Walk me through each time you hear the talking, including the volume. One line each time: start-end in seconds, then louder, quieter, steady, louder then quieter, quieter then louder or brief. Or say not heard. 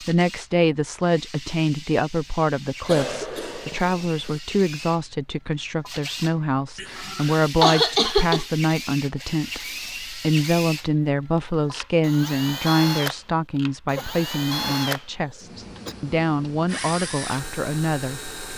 0.0-18.3 steady.